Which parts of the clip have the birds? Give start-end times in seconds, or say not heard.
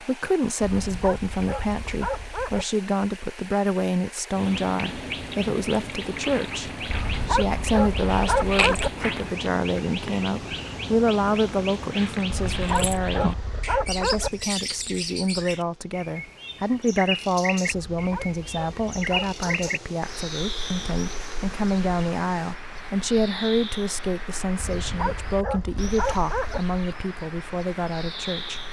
4.3-28.6.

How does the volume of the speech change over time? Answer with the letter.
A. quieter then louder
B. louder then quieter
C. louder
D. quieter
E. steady
E.